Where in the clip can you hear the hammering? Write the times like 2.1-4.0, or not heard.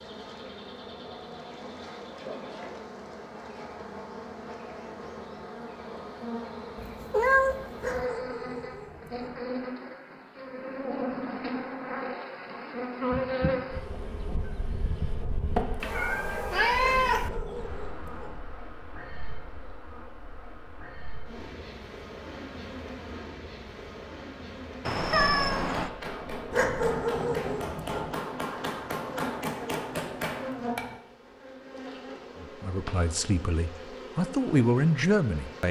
25.6-31.0.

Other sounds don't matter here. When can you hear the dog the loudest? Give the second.
27 s.